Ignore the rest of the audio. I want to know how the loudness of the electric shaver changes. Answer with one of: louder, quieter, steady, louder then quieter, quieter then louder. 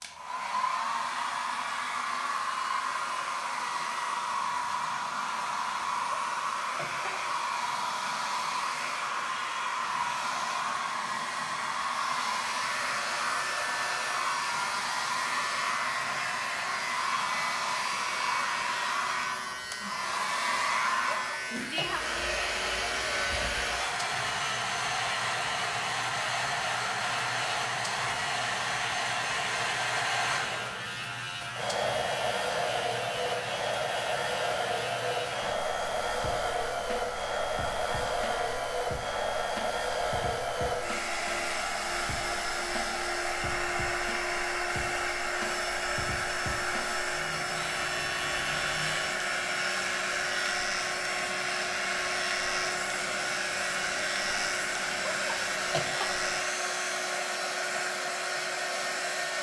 steady.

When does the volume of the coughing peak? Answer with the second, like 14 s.
56 s.